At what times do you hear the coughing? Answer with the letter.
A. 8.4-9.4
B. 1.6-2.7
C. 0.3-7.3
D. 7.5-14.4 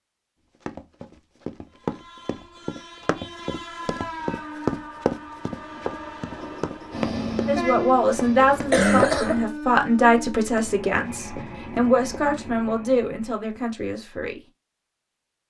A.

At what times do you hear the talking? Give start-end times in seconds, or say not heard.
7.5-14.4.